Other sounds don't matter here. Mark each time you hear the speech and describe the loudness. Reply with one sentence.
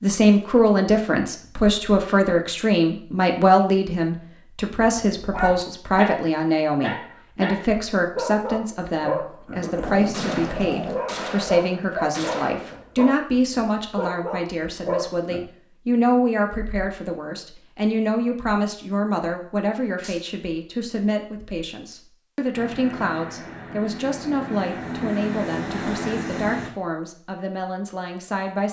The speech can be heard from 0.0 to 28.6 s, getting quieter.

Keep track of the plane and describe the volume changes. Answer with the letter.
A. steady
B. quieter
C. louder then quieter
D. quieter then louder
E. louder
E.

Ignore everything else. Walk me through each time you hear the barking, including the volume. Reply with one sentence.
The barking can be heard from 4.8 to 15.4 s, at a steady volume.